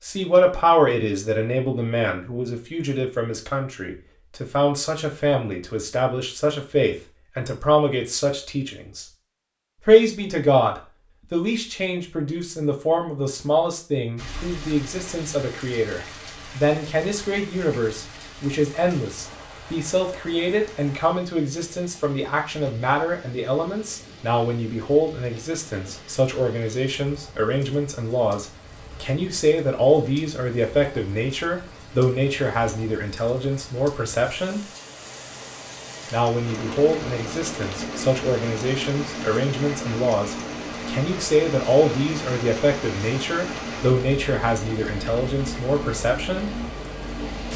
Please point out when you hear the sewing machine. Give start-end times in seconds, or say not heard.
36.4-47.5.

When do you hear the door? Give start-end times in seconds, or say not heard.
not heard.